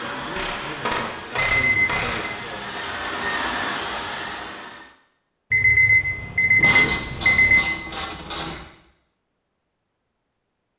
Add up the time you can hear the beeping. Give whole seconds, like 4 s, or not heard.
3 s.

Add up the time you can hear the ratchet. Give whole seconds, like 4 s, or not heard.
4 s.